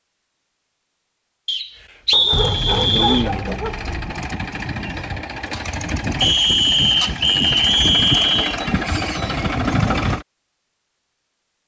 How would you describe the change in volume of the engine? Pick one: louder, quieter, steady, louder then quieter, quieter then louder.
louder.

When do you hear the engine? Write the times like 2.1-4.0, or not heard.
2.4-10.2.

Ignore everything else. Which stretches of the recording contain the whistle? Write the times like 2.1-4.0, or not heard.
1.4-3.3, 6.2-8.6.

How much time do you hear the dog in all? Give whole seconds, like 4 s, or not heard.
2 s.